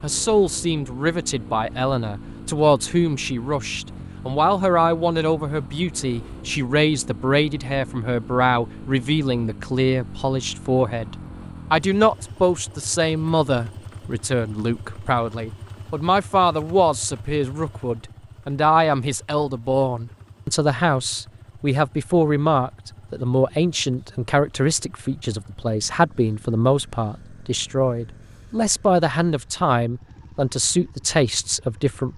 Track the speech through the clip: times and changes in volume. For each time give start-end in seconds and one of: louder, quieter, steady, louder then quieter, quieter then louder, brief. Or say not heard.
0.0-32.1 steady.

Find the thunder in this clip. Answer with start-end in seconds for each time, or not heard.
not heard.